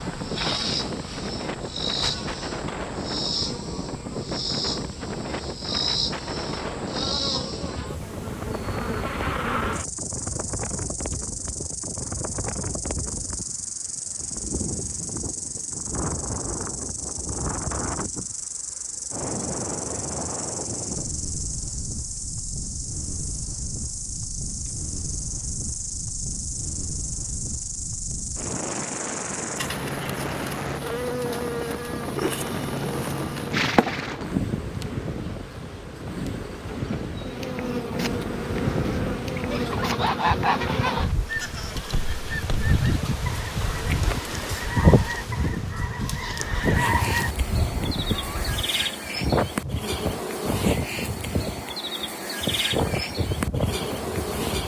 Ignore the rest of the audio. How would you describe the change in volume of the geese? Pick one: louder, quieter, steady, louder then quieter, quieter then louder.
quieter then louder.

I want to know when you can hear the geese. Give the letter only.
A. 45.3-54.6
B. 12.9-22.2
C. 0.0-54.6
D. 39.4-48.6
D.